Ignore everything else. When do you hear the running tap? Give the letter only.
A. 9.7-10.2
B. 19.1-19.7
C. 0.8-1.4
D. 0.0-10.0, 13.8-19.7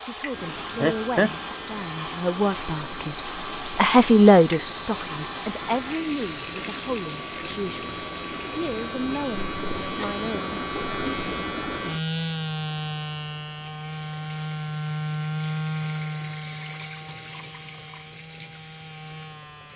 D.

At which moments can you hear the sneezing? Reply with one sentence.
The sneezing can be heard from 0.8 to 1.4 s.